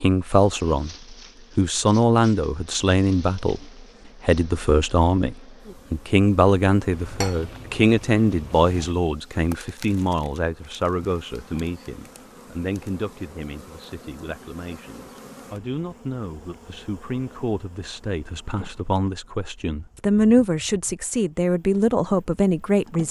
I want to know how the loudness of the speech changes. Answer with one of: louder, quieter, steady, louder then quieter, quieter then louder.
quieter then louder.